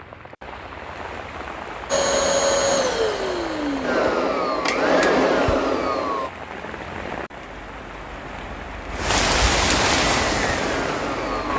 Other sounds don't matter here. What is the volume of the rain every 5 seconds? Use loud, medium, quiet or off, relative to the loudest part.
medium, loud, loud.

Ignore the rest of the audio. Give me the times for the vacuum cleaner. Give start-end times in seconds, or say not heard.
1.9-6.3, 10.2-11.5.